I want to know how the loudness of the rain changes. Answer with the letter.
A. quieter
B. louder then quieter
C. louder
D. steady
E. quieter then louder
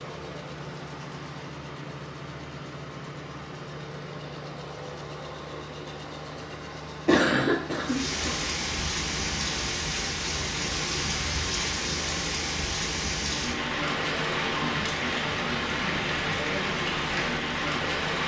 D.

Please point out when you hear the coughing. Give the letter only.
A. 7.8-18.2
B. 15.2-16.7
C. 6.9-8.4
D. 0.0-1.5
C.